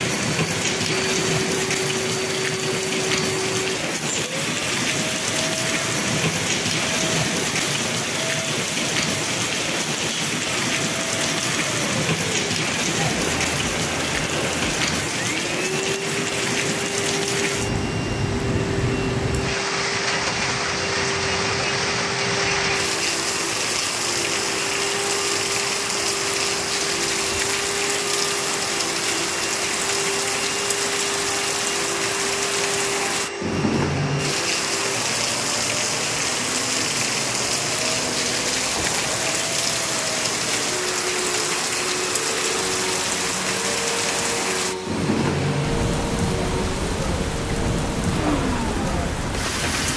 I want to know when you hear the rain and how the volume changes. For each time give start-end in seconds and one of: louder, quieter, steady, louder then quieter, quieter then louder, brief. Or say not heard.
0.0-49.9 steady.